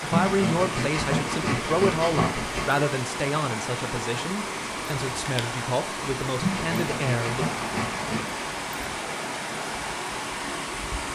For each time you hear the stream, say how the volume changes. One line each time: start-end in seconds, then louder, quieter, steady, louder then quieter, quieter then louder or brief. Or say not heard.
0.0-11.1 steady.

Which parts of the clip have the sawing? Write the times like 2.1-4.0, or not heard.
0.1-2.8, 6.4-8.2.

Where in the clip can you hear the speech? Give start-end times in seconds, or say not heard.
0.0-7.6.